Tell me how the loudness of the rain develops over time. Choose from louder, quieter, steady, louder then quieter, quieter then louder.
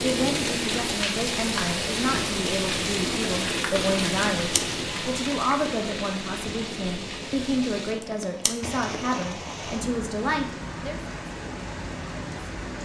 quieter.